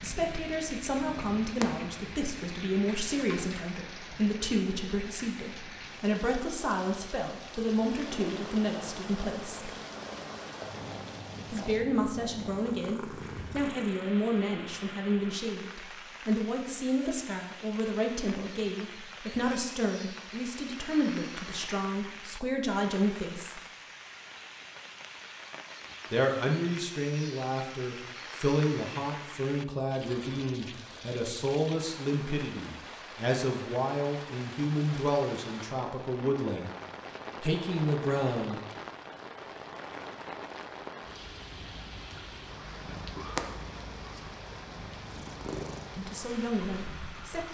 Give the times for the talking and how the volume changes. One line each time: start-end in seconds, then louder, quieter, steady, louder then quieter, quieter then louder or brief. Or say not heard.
0.0-9.7 steady
11.5-23.6 steady
26.1-36.8 steady
37.4-38.6 brief
46.0-47.4 brief.